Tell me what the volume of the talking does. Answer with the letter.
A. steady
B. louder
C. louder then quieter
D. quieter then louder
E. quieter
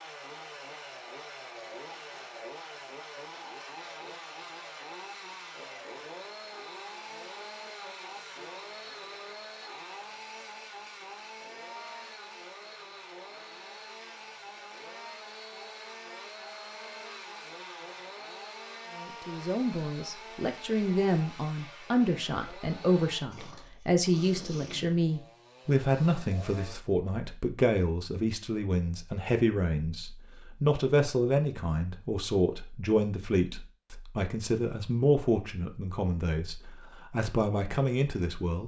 A.